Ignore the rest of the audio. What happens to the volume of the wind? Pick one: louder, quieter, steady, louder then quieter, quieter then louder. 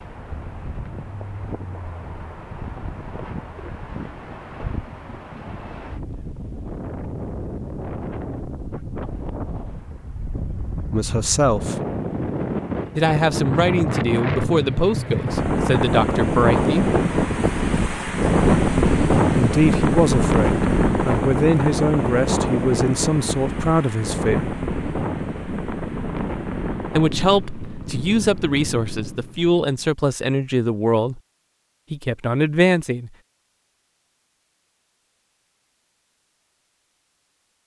louder then quieter.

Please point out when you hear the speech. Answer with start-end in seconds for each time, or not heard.
10.9-11.8, 12.9-16.9, 19.4-24.5, 26.9-31.2, 31.9-33.1.